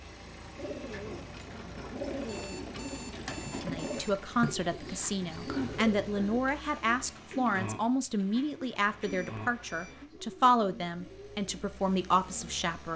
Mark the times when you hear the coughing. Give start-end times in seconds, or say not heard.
not heard.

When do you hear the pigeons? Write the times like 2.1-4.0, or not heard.
0.6-12.6.